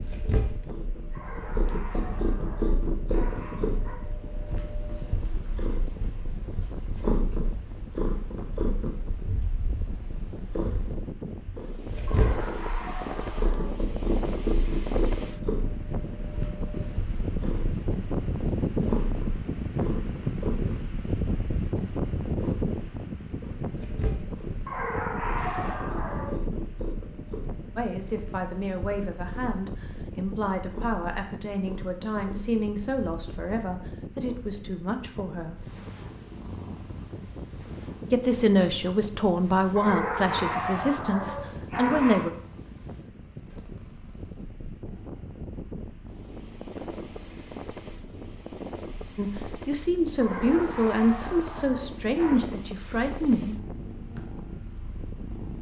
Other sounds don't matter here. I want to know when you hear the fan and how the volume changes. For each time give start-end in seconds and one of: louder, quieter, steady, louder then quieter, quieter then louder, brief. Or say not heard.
0.0-55.5 louder then quieter.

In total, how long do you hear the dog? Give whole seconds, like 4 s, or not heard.
11 s.